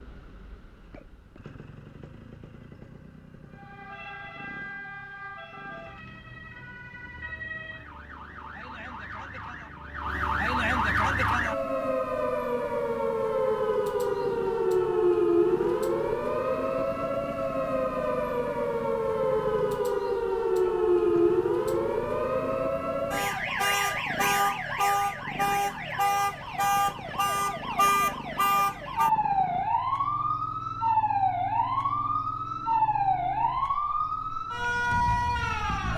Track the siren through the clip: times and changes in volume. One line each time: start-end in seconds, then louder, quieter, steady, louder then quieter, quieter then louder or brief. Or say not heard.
3.5-35.9 louder.